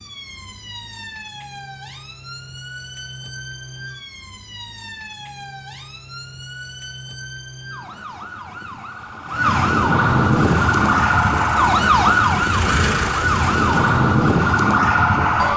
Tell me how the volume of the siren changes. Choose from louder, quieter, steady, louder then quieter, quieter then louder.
louder.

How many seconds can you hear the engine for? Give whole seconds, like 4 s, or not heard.
4 s.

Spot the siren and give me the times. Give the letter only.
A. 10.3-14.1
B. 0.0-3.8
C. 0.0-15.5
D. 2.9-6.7
C.